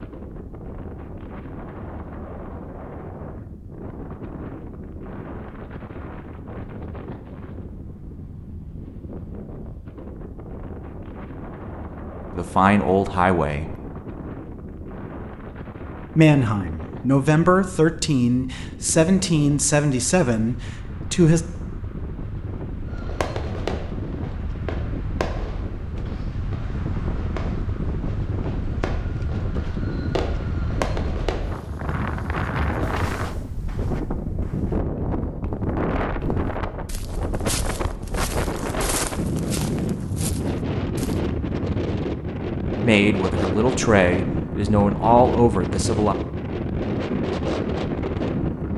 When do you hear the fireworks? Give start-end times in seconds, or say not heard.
22.9-31.6.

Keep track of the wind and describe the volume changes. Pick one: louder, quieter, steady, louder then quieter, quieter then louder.
louder.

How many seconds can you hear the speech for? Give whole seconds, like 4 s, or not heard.
10 s.